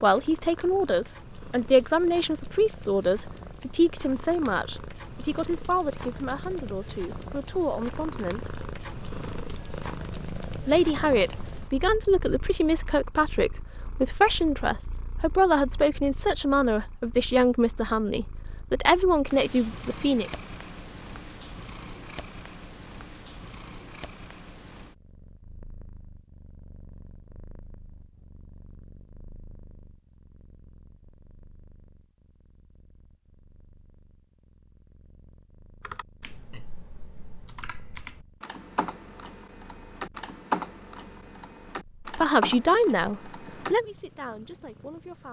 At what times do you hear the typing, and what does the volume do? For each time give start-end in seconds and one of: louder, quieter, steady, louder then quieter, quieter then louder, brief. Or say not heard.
35.8-43.8 louder.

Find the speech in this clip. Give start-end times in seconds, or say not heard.
0.0-8.6, 10.7-20.3, 42.0-45.2.